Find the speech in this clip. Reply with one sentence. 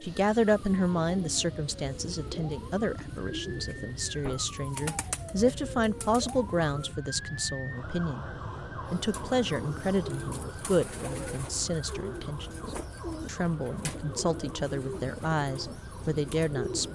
The speech can be heard from 0.0 to 8.2 s, from 8.9 to 12.5 s and from 13.2 to 16.8 s.